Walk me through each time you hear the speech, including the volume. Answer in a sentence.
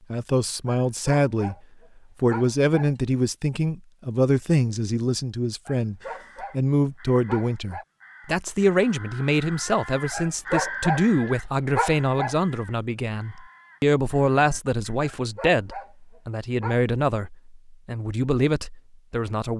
The speech can be heard briefly from 0.1 to 1.6 s; and from 2.2 to 19.5 s, at a steady volume.